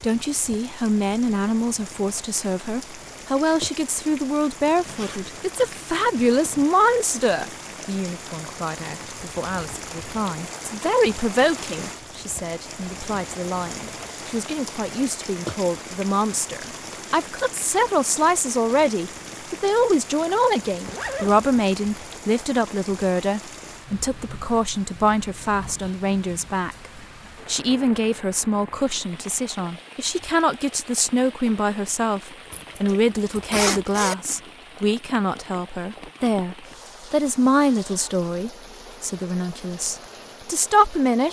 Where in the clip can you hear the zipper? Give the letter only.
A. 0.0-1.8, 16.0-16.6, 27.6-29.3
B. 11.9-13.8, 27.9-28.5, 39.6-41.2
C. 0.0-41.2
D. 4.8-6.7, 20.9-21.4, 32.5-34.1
D.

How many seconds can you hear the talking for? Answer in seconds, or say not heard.
41 s.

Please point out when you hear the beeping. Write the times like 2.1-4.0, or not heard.
not heard.